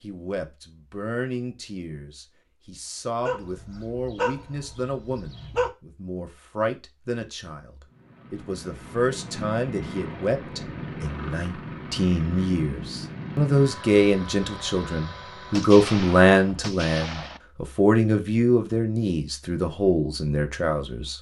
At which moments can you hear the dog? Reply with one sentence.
You can hear the dog from 3.2 to 5.7 s.